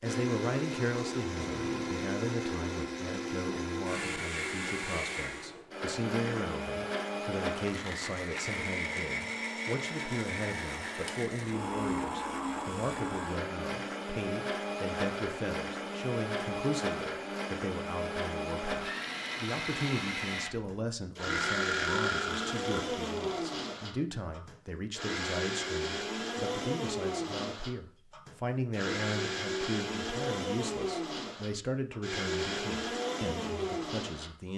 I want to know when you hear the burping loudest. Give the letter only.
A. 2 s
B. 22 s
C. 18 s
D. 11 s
B.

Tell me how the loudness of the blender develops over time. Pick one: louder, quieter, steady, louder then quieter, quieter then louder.
steady.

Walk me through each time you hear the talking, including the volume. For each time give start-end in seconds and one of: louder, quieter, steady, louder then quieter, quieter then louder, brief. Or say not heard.
0.0-34.5 steady.